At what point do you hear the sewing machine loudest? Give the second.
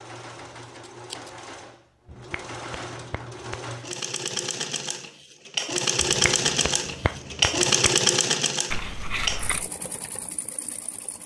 8 s.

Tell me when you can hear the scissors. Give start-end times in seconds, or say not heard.
0.8-1.3, 8.7-9.7.